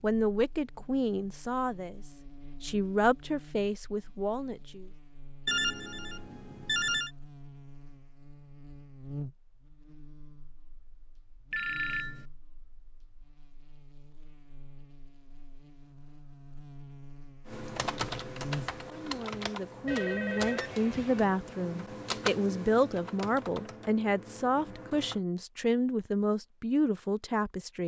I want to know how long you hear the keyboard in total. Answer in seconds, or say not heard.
8 s.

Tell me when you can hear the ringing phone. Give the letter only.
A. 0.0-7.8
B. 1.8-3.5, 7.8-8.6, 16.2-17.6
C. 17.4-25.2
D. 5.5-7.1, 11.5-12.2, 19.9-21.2
D.